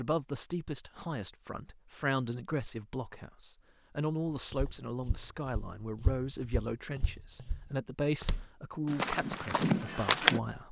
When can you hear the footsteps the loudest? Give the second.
10 s.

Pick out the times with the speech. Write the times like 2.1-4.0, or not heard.
0.0-10.6.